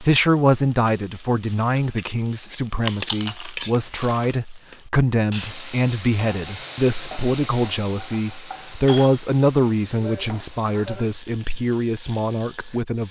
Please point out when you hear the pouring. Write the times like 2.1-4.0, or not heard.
not heard.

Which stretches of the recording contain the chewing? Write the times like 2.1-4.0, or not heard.
2.8-4.3.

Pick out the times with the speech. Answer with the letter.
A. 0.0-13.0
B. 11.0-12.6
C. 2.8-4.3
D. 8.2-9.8
A.